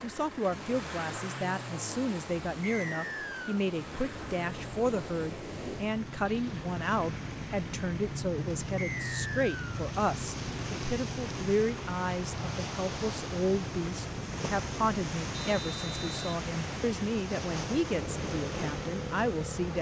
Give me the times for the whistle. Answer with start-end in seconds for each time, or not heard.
2.6-3.6, 8.8-9.8, 15.3-16.4.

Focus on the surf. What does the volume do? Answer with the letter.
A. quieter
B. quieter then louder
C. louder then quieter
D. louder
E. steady
D.